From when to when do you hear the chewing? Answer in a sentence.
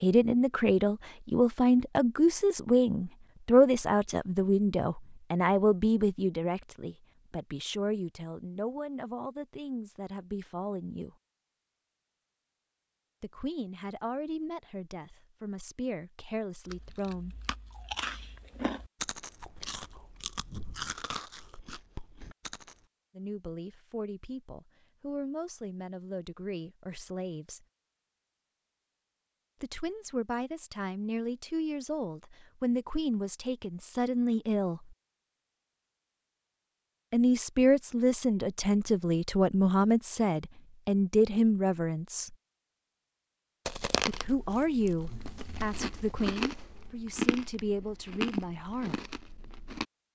You can hear the chewing from 16.6 to 22.9 s and from 43.6 to 49.9 s.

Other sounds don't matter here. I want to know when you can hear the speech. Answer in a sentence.
You can hear the speech from 0.0 to 11.2 s, from 13.2 to 17.4 s, from 23.1 to 27.6 s, from 29.6 to 35.0 s, from 37.1 to 42.4 s and from 44.0 to 49.1 s.